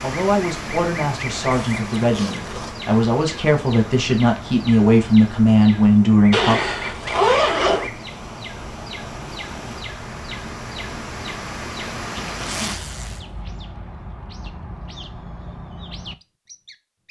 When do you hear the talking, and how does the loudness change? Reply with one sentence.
You can hear the talking from 0.0 to 6.6 s, getting louder.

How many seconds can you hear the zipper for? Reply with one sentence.
You can hear the zipper for 4 seconds altogether.